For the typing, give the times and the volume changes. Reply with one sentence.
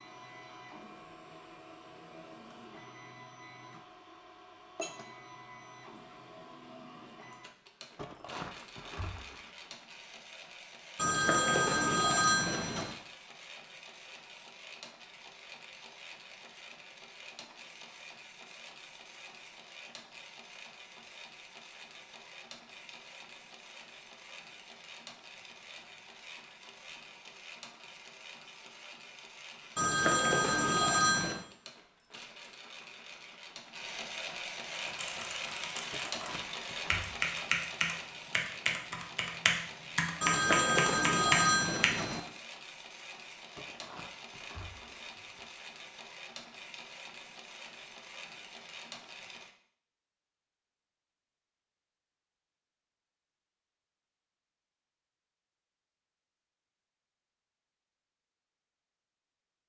You can hear the typing from 34.7 to 42.0 s, getting louder.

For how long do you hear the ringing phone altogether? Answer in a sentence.
You can hear the ringing phone for 6 seconds altogether.